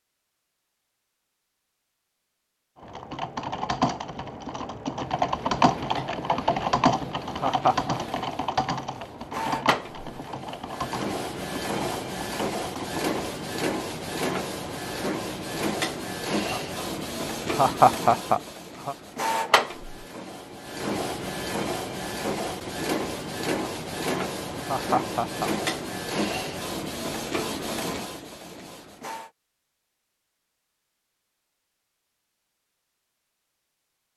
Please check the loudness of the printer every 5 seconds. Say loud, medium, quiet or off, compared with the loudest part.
off, medium, loud, loud, loud, loud, off.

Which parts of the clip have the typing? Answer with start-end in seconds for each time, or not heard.
2.8-13.1.